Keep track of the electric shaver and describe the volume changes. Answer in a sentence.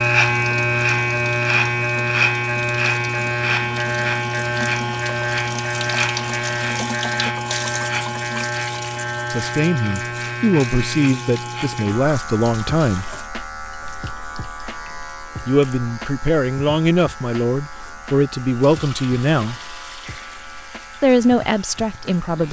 The loudness of the electric shaver goes down.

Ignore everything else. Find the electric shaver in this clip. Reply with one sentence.
You can hear the electric shaver from 0.0 to 22.4 s.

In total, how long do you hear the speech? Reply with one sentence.
You can hear the speech for 9 seconds altogether.